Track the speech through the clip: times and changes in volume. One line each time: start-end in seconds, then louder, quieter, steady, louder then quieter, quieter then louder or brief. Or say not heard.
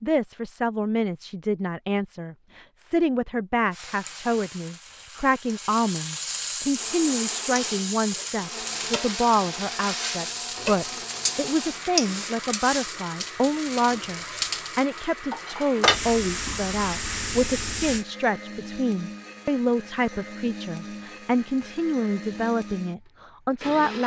0.0-24.0 steady.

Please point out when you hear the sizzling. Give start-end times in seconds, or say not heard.
3.7-18.1.